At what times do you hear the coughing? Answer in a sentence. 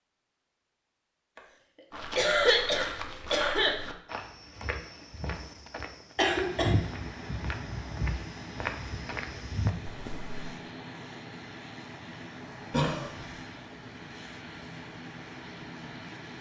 The coughing can be heard from 2.1 to 3.8 s, from 6.2 to 6.8 s and from 12.7 to 13.2 s.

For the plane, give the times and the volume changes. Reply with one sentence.
You can hear the plane from 6.3 to 16.3 s, at a steady volume.